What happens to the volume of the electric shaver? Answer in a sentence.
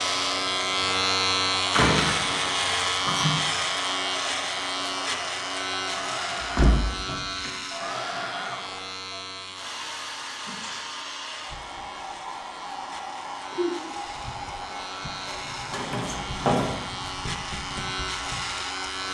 The volume of the electric shaver goes down, then up.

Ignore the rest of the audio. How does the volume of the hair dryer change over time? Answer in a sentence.
The volume of the hair dryer stays about the same.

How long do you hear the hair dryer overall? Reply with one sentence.
You can hear the hair dryer for 19 seconds altogether.